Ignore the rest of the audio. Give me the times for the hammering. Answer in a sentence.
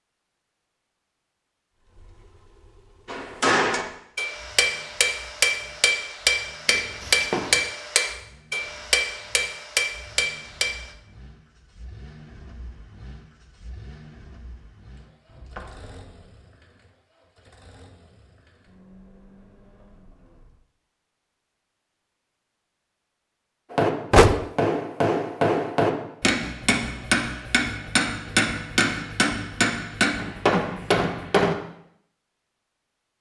The hammering can be heard from 3.0 to 10.9 s and from 23.7 to 31.6 s.